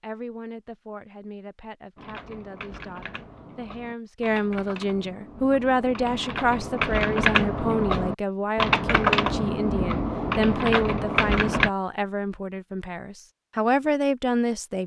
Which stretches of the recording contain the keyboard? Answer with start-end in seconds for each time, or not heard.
1.9-11.7.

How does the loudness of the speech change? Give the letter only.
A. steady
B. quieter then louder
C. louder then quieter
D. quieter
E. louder
E.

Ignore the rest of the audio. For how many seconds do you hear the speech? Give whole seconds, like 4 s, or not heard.
15 s.